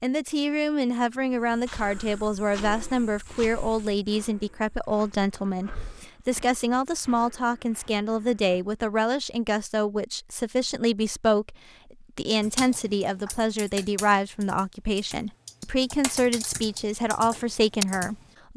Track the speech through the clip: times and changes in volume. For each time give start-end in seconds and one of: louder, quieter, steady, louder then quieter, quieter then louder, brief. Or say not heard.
0.0-18.5 steady.